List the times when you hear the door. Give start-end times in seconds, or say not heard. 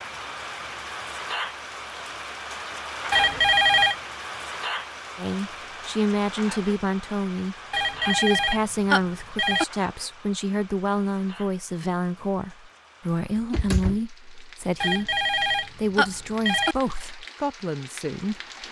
13.3-14.0.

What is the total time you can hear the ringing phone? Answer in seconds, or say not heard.
5 s.